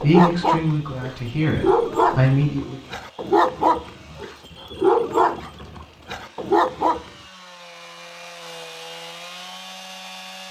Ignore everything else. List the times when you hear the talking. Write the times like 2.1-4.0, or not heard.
0.0-2.8.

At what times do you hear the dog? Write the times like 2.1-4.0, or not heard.
0.0-7.2.